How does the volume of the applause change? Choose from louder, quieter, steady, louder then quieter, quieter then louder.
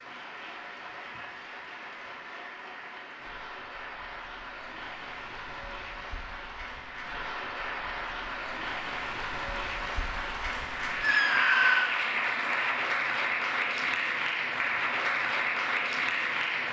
louder.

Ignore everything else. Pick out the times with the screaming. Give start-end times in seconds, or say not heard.
11.0-11.9.